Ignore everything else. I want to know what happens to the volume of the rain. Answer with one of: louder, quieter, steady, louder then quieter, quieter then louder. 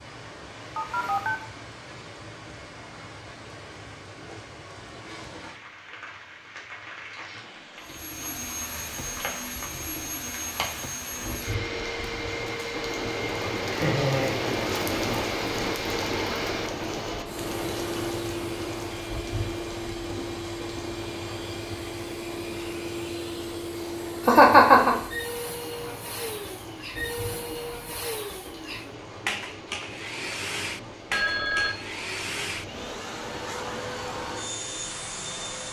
louder then quieter.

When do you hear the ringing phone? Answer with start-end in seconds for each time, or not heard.
0.8-1.4, 31.1-31.8.